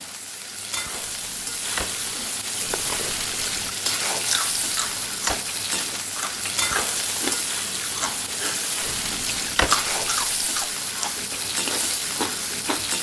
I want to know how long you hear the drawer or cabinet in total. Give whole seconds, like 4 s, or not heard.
3 s.